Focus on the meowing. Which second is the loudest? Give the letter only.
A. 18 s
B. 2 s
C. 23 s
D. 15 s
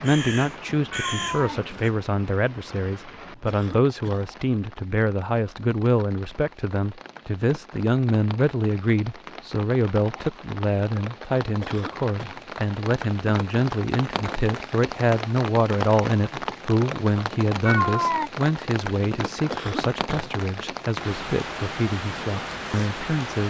A.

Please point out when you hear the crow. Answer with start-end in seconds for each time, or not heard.
0.0-1.9.